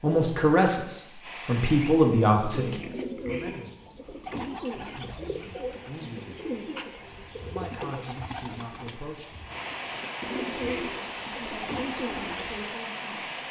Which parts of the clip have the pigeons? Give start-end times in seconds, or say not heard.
1.6-12.7.